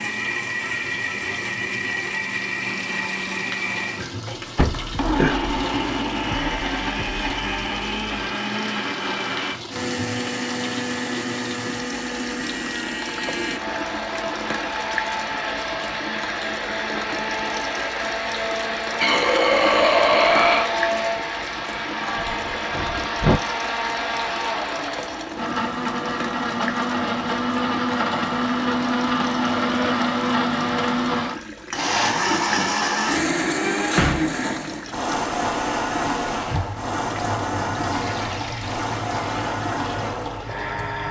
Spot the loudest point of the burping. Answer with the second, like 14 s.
20 s.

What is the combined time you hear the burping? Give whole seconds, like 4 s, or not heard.
3 s.